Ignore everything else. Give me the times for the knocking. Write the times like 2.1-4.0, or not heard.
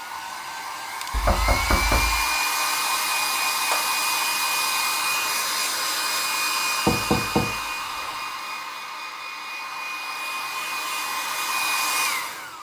1.1-2.2, 6.8-8.2.